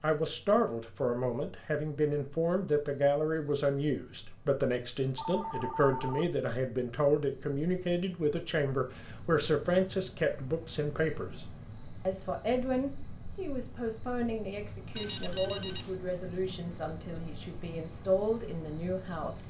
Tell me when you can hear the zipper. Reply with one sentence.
The zipper can't be heard in this clip.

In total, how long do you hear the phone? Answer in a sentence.
You can hear the phone for 2 seconds altogether.